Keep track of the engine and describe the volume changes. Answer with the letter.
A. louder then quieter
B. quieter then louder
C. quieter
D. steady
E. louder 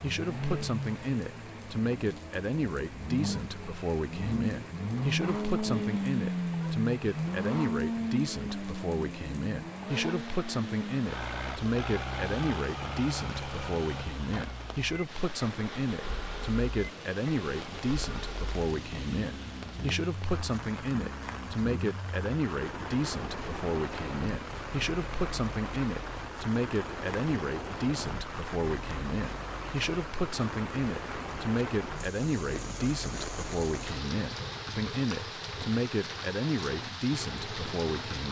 C.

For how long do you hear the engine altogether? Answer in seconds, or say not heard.
38 s.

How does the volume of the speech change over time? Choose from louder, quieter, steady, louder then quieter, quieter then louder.
steady.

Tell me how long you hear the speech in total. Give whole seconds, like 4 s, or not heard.
38 s.